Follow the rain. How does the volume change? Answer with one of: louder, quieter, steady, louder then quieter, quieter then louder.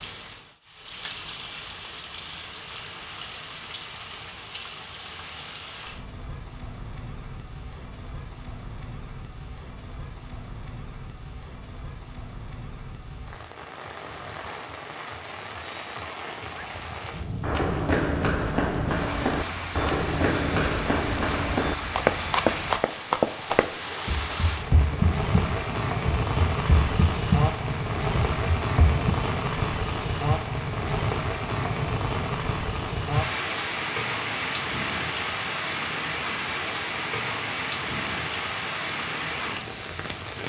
louder.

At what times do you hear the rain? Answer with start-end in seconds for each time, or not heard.
0.0-40.4.